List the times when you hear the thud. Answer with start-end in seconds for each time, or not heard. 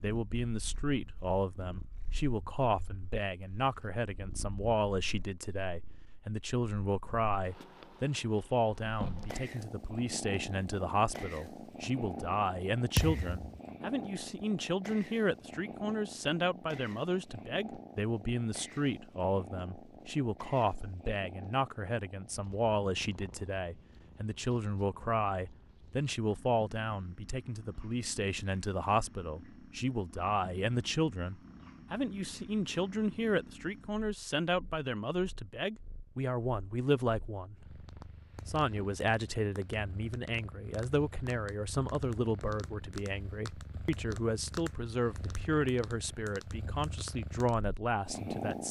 12.9-13.6.